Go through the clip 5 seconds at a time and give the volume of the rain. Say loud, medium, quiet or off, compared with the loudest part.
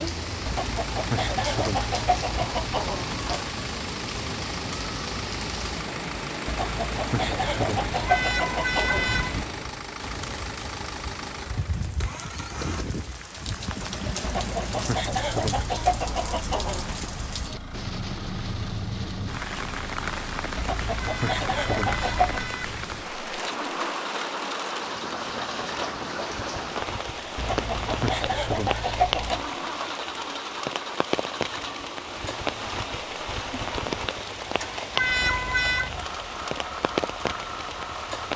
loud, loud, medium, loud, loud, loud, loud, loud.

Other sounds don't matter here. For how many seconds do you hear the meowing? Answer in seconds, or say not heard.
4 s.